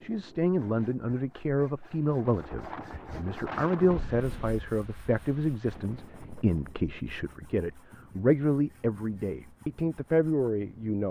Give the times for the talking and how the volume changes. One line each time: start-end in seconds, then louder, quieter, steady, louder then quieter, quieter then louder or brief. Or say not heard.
0.0-11.0 steady.